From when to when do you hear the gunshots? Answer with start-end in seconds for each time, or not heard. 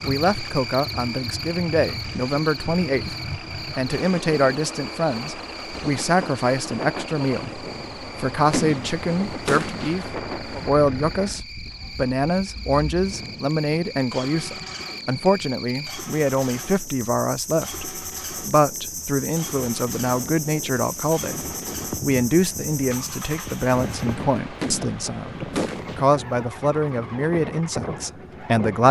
8.5-10.1, 24.6-26.1.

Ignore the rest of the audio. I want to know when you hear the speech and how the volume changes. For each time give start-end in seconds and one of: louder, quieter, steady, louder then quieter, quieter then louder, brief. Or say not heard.
0.0-28.8 steady.